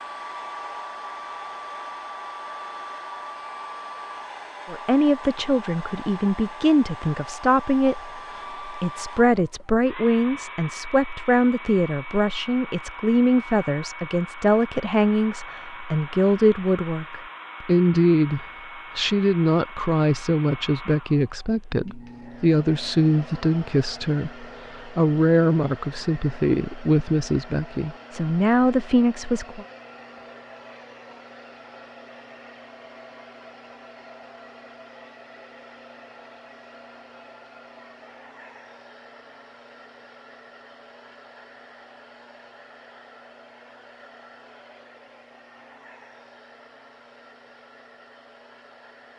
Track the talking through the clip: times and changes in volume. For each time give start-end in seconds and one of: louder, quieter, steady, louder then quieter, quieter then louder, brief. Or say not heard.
4.7-29.6 steady.